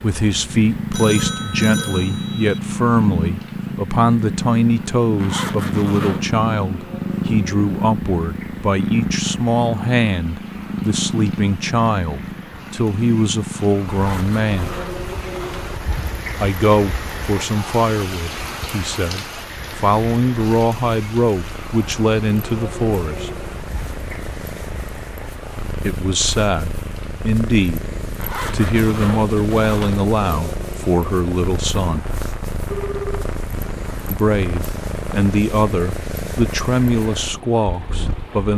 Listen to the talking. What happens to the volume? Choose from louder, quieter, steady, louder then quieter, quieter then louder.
steady.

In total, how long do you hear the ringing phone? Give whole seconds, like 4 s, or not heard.
2 s.